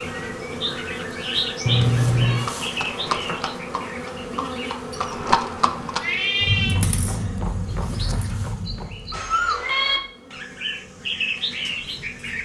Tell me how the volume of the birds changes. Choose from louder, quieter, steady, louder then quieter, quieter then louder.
quieter then louder.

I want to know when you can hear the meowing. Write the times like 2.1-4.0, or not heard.
1.6-2.5, 6.0-6.8, 9.1-10.0.